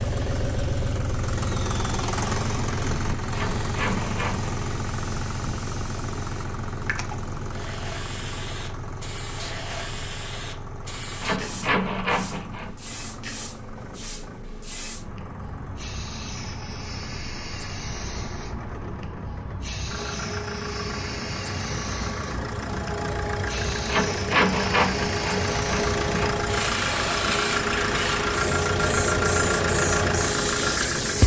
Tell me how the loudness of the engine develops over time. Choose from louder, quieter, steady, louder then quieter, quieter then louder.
quieter then louder.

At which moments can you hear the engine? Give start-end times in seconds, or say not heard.
0.0-31.2.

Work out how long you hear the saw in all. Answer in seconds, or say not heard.
5 s.